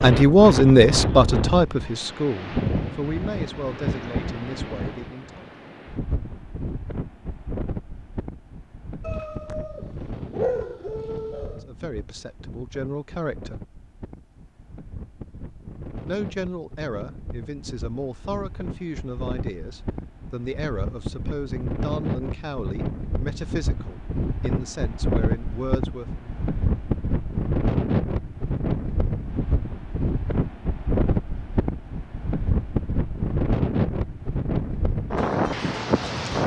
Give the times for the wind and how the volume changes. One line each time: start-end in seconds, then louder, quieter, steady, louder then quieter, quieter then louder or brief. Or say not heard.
0.0-36.4 quieter then louder.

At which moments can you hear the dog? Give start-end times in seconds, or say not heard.
9.0-11.6.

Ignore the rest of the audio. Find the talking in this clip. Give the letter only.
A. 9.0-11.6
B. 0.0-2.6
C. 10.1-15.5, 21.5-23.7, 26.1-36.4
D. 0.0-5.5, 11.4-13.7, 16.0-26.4
D.